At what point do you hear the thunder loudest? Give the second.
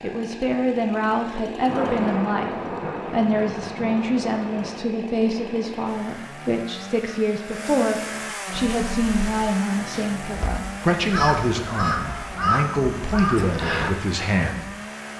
2 s.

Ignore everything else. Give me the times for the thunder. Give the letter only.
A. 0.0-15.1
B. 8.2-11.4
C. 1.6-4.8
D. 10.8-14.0
C.